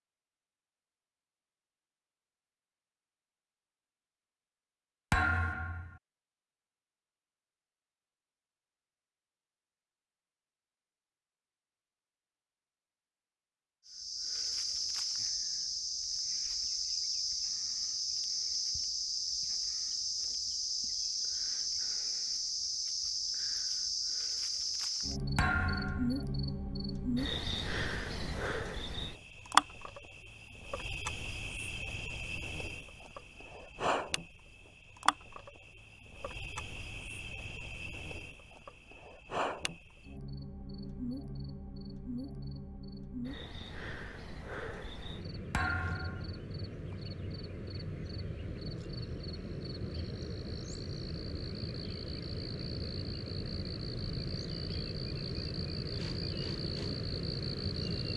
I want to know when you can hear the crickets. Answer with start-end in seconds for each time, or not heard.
13.8-58.1.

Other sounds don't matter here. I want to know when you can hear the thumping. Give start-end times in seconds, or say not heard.
5.1-6.0, 25.4-26.2, 45.5-46.4.